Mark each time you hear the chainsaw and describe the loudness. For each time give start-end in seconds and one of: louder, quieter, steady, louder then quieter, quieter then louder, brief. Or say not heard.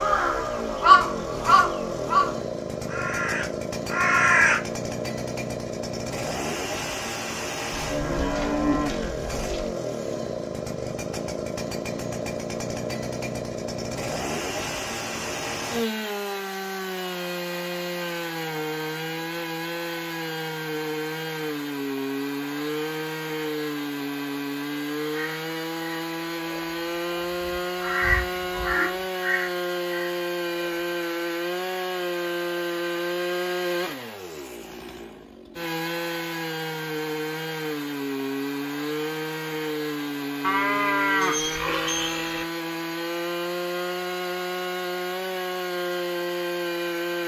0.0-47.2 steady.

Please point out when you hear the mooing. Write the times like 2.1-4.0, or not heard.
7.7-9.8, 40.4-42.5.